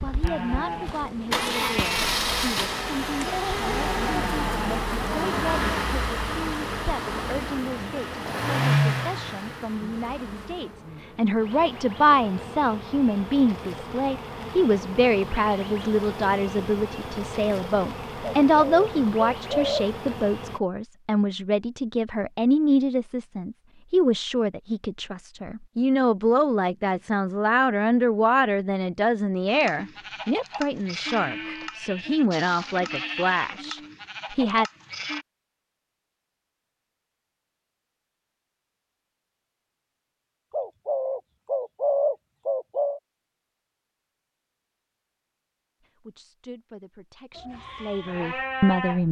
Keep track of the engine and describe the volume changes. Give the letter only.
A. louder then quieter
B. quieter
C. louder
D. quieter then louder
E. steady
D.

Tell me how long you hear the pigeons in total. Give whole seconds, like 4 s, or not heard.
4 s.